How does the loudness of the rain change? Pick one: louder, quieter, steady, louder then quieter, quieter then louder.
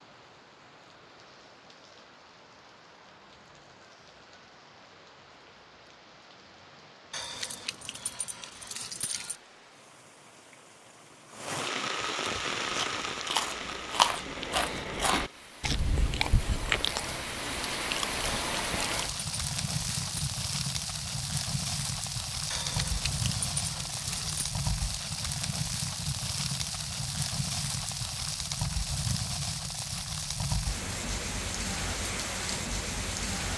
louder.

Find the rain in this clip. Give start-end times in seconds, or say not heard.
0.0-33.5.